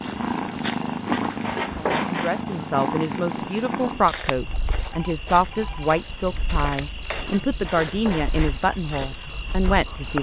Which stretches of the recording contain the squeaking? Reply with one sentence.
The squeaking can be heard from 1.1 to 2.4 s and from 7.2 to 8.4 s.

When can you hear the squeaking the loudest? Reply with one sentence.
The loudest moment of the squeaking is at 2 seconds.